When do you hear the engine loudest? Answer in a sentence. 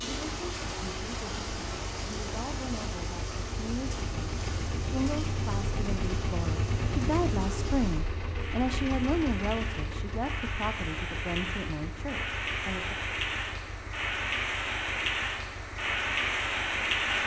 The volume of the engine peaks at 7 seconds.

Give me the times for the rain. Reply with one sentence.
The rain can be heard from 0.0 to 17.2 s.